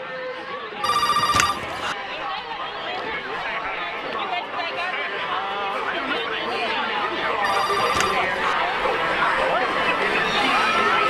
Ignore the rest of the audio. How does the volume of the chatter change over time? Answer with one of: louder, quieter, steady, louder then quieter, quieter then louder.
louder.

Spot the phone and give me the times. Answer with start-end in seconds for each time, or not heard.
0.8-1.9, 7.4-8.6.